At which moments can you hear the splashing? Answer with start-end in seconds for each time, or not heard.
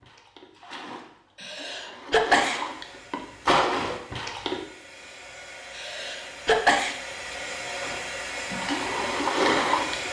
0.0-4.6, 7.8-10.0.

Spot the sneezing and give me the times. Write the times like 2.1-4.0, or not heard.
1.4-2.6, 5.8-7.0.